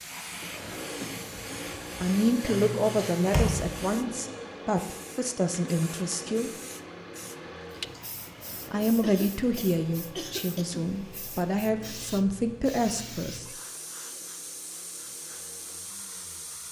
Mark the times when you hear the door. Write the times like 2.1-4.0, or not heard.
3.3-3.8.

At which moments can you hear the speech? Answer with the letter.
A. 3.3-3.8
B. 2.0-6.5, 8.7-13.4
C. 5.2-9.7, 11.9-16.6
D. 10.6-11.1
B.